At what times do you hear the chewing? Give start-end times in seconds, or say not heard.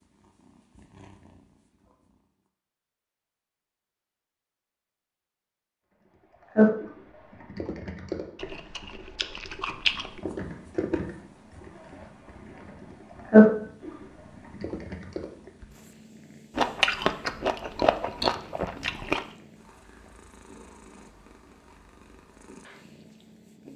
8.3-10.2, 16.6-19.2.